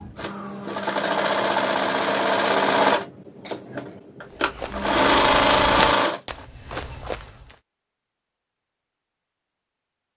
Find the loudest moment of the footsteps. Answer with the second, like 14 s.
6 s.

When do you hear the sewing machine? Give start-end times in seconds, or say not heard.
0.0-6.5.